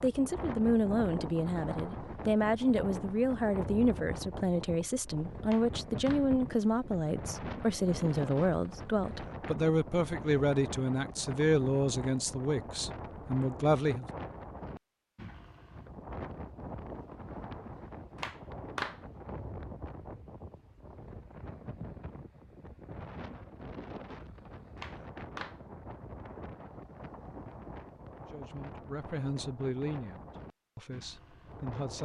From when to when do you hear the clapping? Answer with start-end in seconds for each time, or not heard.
5.5-6.3, 18.1-19.0, 24.8-25.6.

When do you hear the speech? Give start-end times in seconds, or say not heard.
0.0-14.1, 28.3-31.9.